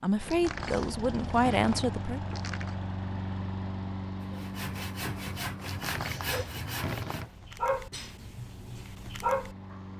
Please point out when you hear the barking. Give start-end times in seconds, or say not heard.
6.2-9.8.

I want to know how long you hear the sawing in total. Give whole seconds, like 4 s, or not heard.
3 s.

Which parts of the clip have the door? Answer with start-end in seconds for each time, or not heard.
0.2-2.8, 5.5-7.5.